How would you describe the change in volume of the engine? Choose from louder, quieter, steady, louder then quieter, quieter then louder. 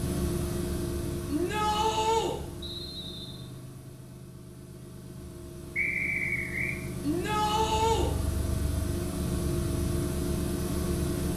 quieter then louder.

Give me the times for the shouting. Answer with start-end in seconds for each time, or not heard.
1.2-2.4, 7.0-8.1.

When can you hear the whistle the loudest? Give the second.
6 s.